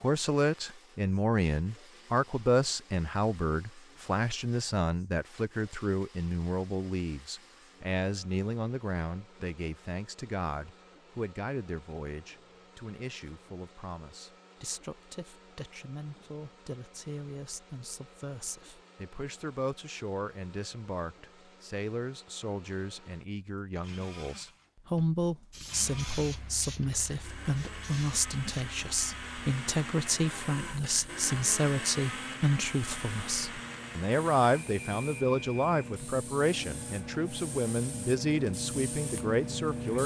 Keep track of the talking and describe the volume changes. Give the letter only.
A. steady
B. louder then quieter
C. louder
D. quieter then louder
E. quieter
D.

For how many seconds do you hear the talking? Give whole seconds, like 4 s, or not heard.
40 s.